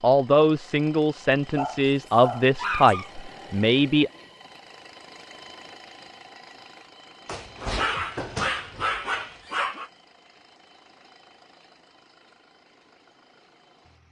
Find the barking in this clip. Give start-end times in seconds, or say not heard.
1.6-3.1, 7.2-9.9.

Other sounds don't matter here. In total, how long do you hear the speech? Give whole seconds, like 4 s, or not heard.
4 s.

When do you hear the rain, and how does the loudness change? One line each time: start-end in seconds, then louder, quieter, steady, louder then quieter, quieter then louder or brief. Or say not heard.
not heard.